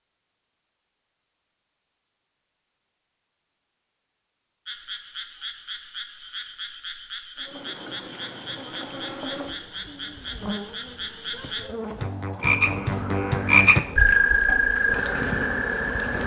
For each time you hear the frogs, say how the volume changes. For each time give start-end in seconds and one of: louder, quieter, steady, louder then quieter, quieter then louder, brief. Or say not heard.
4.7-16.2 louder.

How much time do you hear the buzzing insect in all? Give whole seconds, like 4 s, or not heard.
9 s.